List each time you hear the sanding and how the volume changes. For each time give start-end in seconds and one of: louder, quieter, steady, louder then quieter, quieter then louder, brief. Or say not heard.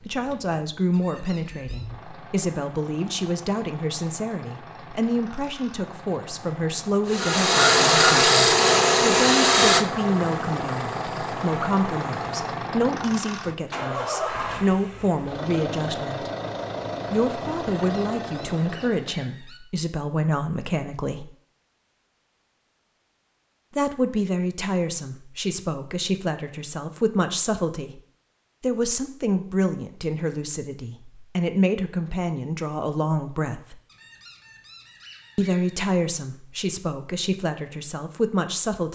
7.0-12.5 quieter.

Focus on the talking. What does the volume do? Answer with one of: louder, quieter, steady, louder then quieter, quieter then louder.
steady.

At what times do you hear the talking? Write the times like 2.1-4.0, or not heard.
0.0-16.3, 17.1-21.3, 23.8-28.0, 28.6-33.8, 35.4-38.9.